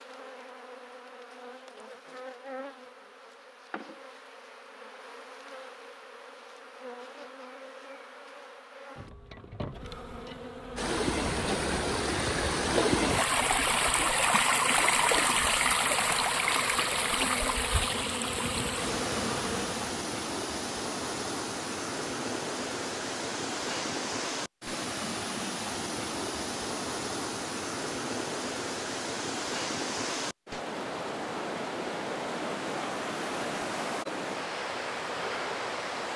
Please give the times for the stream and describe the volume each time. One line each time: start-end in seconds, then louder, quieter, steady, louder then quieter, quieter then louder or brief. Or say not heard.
10.8-36.1 quieter.